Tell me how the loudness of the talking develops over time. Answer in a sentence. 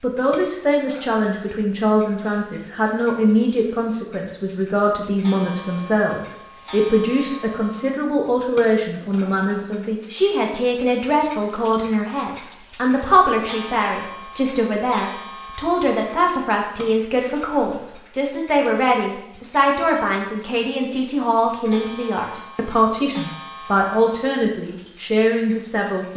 The volume of the talking stays about the same.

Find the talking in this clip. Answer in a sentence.
The talking can be heard from 0.0 to 26.1 s.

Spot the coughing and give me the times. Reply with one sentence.
The coughing can't be heard in this clip.